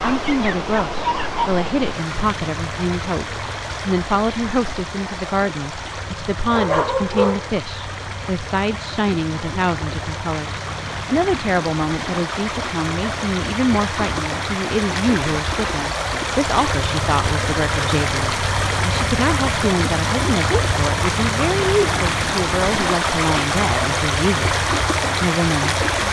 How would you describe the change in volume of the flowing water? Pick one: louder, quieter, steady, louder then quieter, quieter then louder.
louder.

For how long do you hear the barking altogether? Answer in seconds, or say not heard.
3 s.